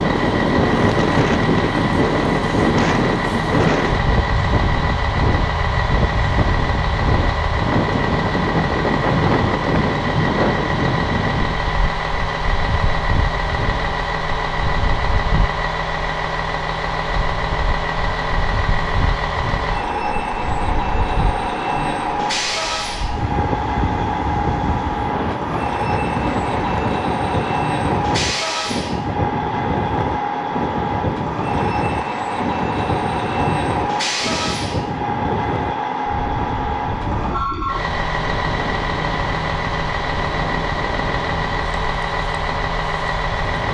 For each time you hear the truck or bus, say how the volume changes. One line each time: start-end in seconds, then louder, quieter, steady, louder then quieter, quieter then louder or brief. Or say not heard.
0.0-43.6 steady.